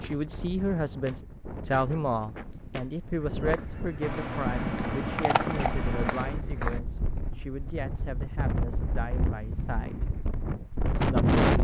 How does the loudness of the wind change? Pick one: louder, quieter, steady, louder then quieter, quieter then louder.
louder.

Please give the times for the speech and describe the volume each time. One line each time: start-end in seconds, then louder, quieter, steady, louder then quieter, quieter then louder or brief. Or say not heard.
0.0-9.9 quieter
10.9-11.3 brief.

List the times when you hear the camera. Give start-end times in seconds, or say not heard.
4.0-6.4.